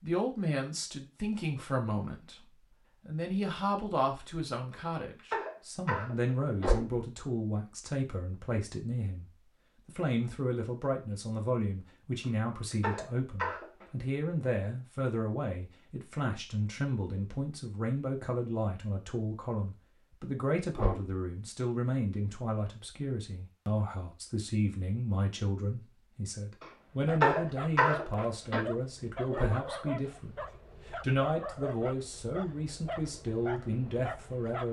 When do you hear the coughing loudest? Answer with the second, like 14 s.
27 s.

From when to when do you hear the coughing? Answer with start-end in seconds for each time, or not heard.
4.7-6.7, 12.2-13.9, 26.6-28.6.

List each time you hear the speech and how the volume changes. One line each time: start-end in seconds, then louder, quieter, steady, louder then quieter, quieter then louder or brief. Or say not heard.
0.0-9.2 steady
9.8-34.6 steady.